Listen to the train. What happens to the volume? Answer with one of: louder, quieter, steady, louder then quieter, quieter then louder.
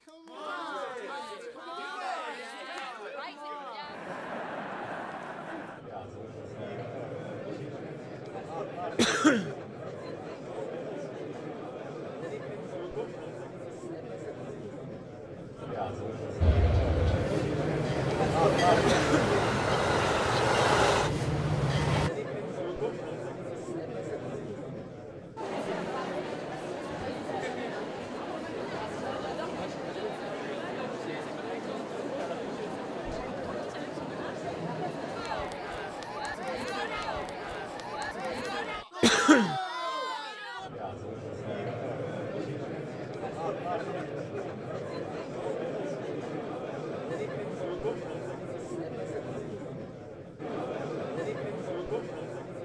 louder.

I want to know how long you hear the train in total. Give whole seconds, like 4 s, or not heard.
6 s.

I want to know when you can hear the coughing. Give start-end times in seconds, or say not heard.
8.9-9.6, 18.9-19.4, 39.0-39.5.